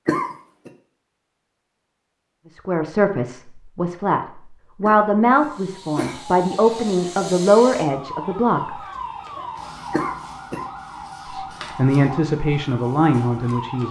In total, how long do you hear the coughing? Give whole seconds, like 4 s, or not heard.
3 s.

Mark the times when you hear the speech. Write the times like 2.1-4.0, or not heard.
2.5-4.2, 4.8-8.8, 11.3-13.8.